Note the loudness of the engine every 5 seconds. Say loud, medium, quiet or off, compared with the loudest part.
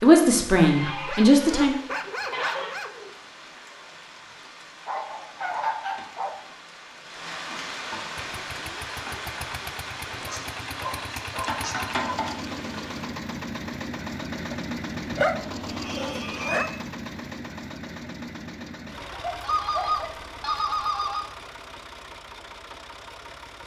off, medium, loud, loud, medium.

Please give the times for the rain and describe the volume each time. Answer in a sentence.
You can hear the rain from 0.0 to 13.1 s, getting louder.